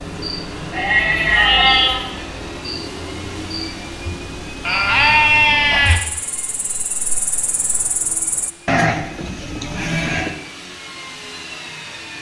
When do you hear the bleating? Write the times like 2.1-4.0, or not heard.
0.7-2.1, 4.7-6.0, 8.7-10.3.